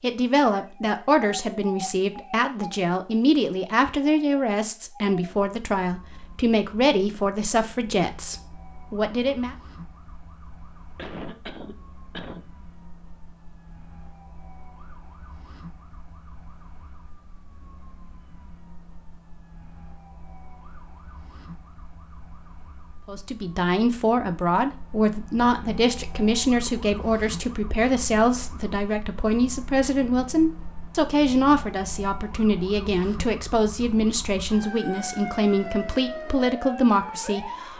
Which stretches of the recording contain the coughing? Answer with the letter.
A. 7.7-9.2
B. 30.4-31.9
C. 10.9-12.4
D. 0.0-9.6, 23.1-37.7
C.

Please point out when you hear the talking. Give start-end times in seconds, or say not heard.
0.0-9.6, 23.1-37.7.